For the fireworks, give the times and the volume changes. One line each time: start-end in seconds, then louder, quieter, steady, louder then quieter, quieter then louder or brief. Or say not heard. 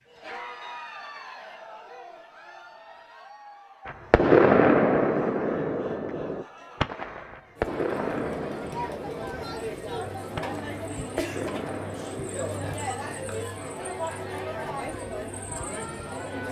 3.9-13.4 quieter.